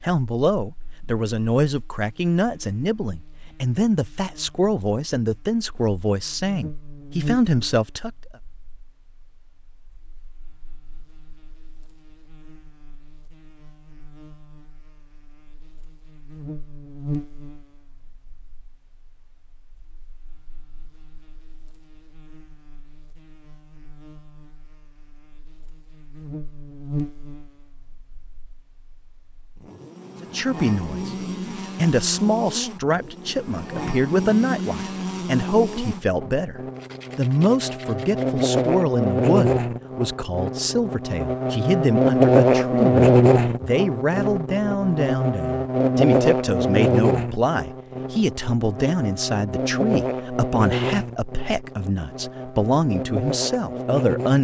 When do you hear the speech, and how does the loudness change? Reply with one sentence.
You can hear the speech from 0.0 to 8.1 s, at a steady volume; and from 30.2 to 54.3 s, at a steady volume.